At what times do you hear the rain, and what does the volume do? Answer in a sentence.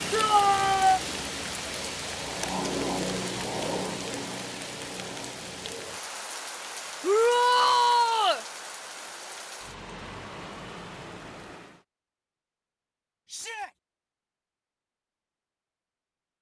The rain can be heard from 0.0 to 11.8 s, getting quieter.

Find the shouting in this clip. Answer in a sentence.
The shouting can be heard from 0.1 to 1.0 s, from 7.0 to 8.4 s and from 13.2 to 13.7 s.